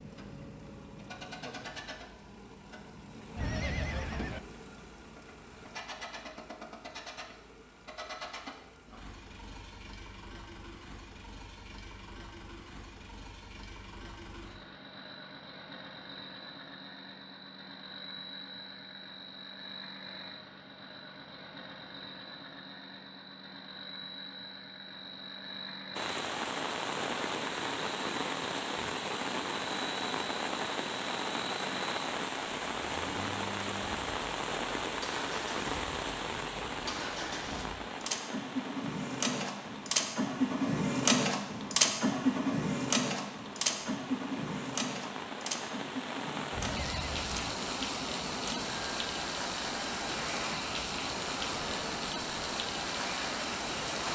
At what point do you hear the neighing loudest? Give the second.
4 s.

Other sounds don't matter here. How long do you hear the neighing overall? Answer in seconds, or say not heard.
2 s.